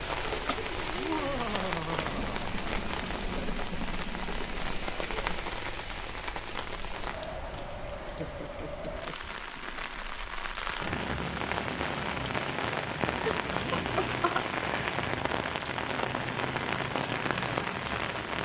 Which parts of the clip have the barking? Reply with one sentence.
You can't hear the barking here.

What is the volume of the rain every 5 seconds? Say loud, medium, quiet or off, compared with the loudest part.
loud, medium, loud, loud.